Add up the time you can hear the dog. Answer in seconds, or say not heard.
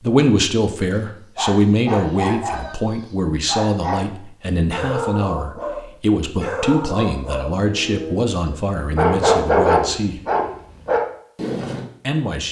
10 s.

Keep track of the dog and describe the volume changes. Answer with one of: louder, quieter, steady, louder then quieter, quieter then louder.
louder.